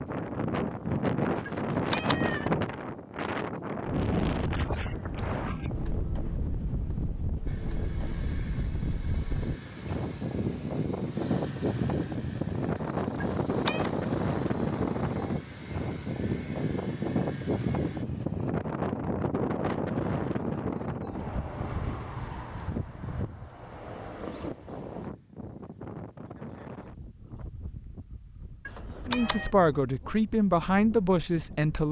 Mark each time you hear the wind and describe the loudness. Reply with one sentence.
You can hear the wind from 0.0 to 31.8 s, getting quieter.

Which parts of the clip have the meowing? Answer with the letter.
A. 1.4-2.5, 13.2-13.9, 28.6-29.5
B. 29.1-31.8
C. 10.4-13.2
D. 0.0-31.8
A.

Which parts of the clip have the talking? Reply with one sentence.
You can hear the talking from 29.1 to 31.8 s.